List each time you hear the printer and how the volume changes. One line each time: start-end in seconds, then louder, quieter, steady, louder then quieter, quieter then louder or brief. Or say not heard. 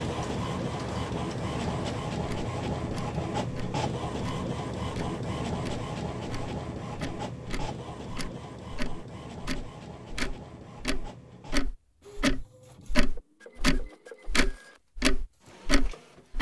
0.0-16.3 quieter.